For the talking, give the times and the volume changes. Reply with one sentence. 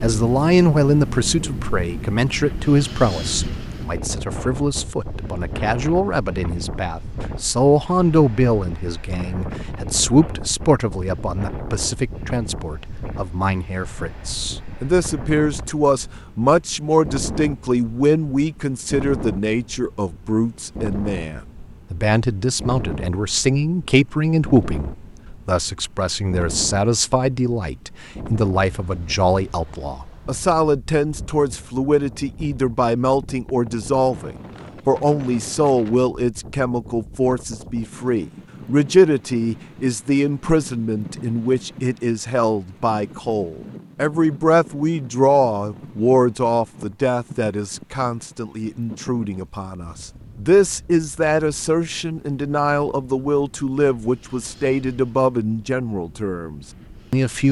You can hear the talking from 0.0 to 57.4 s, at a steady volume.